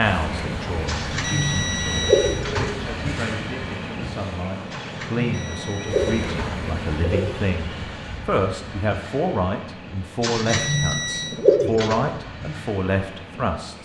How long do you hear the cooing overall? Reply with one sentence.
You can hear the cooing for 6 seconds altogether.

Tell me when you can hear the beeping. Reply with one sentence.
The beeping can be heard from 1.1 to 2.5 s, from 5.2 to 6.3 s and from 10.4 to 11.4 s.